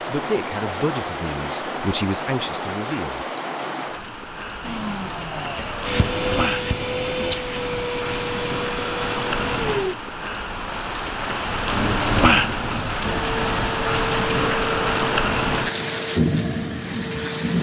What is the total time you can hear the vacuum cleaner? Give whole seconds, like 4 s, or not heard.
10 s.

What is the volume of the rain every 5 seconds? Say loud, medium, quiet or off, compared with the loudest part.
medium, medium, loud, loud.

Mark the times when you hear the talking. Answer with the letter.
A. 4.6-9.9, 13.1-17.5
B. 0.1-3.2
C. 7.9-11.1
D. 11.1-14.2
B.